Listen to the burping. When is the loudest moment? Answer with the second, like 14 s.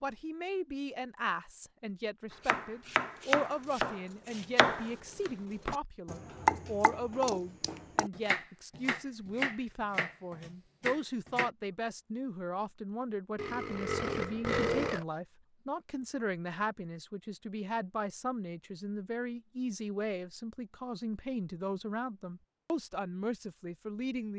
15 s.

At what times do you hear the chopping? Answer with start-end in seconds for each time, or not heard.
2.5-11.5.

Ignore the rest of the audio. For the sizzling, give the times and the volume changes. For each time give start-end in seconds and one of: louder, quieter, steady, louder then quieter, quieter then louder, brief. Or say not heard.
not heard.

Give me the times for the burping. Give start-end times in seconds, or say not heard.
13.3-15.1.